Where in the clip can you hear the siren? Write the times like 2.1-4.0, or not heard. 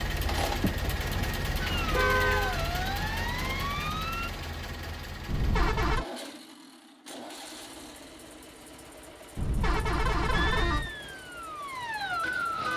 1.6-4.3, 10.3-12.7.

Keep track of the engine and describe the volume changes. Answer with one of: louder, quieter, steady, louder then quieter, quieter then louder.
quieter.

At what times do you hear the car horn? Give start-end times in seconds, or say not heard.
0.3-2.6, 5.2-6.0, 9.3-10.9.